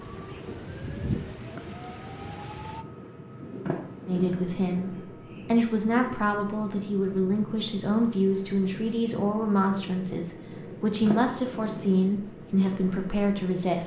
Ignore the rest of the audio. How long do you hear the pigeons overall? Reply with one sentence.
You can't hear the pigeons here.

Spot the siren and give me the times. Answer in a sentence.
You can hear the siren from 0.0 to 2.9 s.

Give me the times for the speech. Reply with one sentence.
You can hear the speech from 4.0 to 13.8 s.